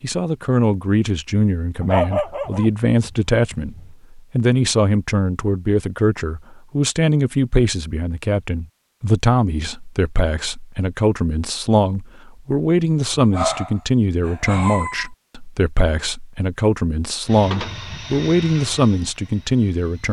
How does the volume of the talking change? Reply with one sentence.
The volume of the talking stays about the same.